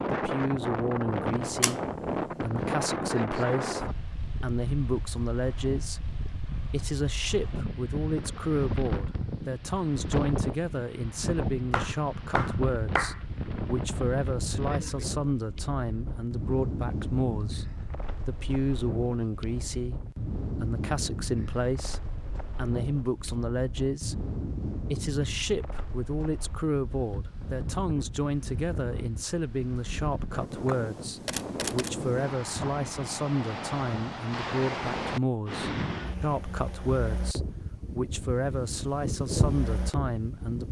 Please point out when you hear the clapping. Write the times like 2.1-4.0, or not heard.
11.7-13.2.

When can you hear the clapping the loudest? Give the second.
13 s.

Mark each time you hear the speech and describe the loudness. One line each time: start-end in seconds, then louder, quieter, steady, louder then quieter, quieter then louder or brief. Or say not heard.
0.1-40.6 steady.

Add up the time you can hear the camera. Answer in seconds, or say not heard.
2 s.